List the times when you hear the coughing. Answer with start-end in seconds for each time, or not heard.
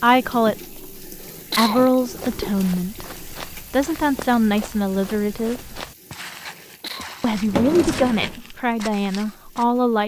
1.2-2.1, 6.5-7.1.